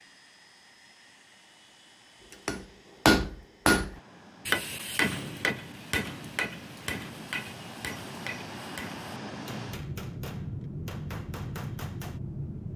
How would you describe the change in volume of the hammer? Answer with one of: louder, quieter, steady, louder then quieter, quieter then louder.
quieter.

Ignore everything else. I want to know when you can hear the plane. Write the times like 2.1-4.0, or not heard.
0.0-12.7.